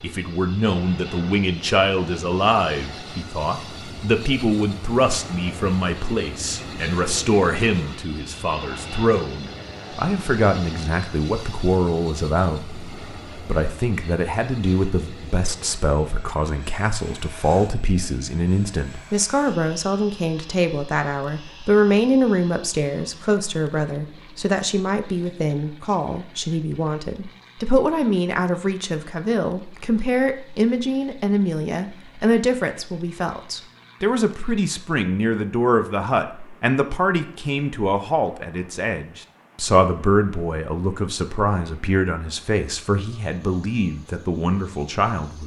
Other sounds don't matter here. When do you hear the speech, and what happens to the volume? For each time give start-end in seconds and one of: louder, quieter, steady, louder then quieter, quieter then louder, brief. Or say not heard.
0.0-45.4 steady.